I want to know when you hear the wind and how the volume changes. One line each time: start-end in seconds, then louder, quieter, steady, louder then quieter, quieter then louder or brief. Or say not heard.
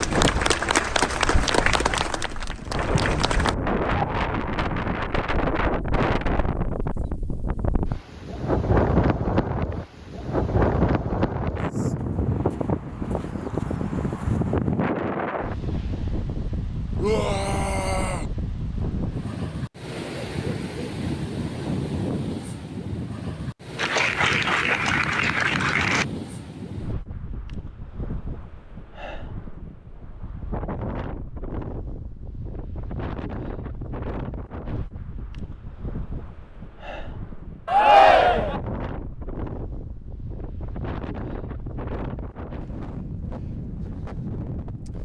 0.0-44.9 quieter.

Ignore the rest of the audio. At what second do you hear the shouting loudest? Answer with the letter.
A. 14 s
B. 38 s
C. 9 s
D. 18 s
B.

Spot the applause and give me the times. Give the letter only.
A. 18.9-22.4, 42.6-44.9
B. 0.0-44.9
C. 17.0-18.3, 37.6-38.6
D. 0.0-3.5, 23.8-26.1
D.